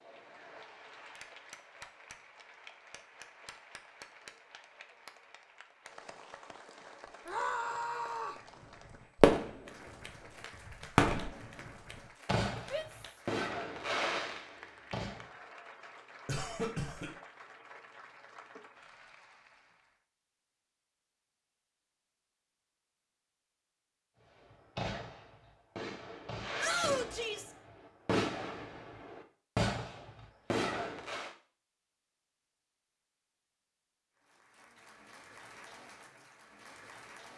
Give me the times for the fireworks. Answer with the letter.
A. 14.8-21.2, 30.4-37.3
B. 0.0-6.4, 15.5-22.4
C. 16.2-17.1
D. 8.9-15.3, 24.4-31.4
D.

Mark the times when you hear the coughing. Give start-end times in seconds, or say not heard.
16.2-17.1.